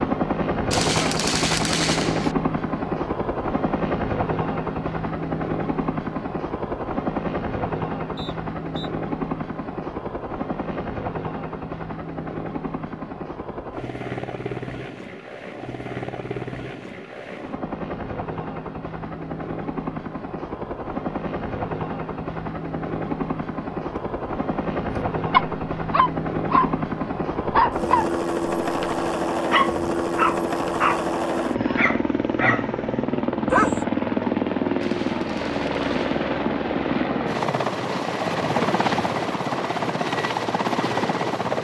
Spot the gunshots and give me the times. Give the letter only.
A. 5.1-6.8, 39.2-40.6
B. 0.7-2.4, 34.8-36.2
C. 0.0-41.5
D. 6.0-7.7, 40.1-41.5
B.